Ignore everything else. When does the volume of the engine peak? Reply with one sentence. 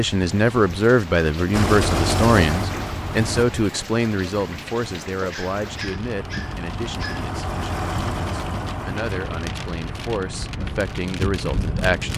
The volume of the engine peaks at 2 seconds.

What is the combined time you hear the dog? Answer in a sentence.
The dog can be heard for 2 seconds in total.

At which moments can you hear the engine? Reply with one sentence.
You can hear the engine from 1.5 to 3.5 s and from 5.5 to 11.8 s.